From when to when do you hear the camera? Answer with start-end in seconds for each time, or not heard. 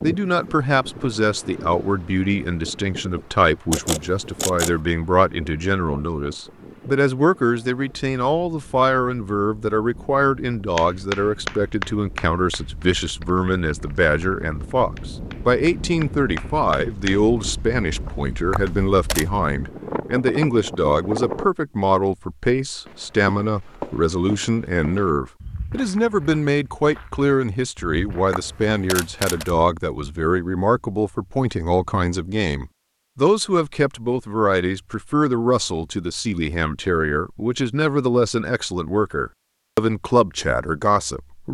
3.7-4.8, 18.5-19.2, 28.3-29.5.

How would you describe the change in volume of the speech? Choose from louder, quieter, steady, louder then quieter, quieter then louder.
steady.